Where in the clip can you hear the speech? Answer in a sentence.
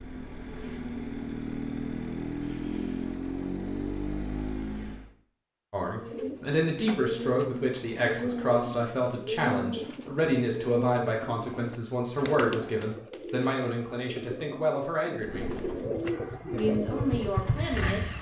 You can hear the speech from 5.7 to 15.5 s and from 16.5 to 18.1 s.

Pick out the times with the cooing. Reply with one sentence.
You can hear the cooing from 5.9 to 17.7 s.